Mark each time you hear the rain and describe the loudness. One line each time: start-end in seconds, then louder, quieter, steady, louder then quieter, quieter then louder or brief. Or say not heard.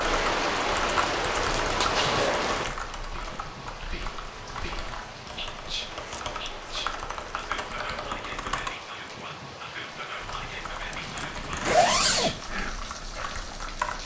0.0-14.0 quieter.